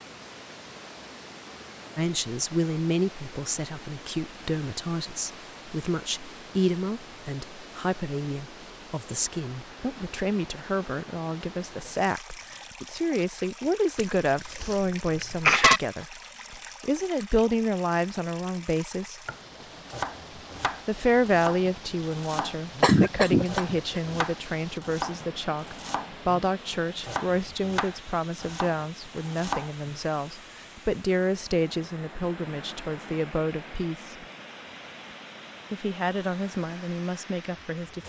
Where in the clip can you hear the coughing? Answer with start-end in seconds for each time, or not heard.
13.9-15.8, 22.8-24.2.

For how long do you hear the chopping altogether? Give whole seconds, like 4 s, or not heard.
11 s.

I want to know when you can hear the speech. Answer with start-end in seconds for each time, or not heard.
1.9-19.2, 20.9-34.1, 35.7-38.0.